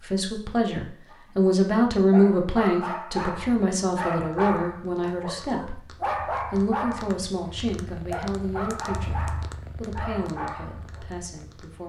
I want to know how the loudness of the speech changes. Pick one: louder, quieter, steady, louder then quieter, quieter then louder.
quieter.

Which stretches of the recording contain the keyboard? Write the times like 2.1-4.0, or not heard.
not heard.